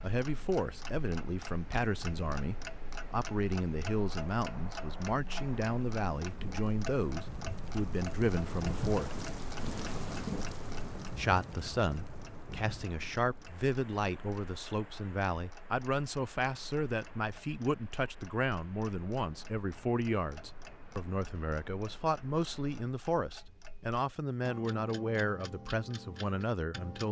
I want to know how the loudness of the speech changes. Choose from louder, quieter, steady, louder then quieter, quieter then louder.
steady.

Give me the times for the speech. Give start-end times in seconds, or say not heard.
0.0-9.2, 11.2-27.0.